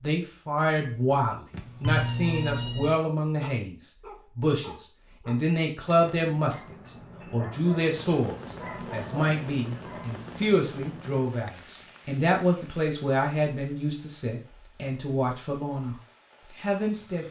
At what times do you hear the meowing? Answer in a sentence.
You can hear the meowing from 1.5 to 3.0 s.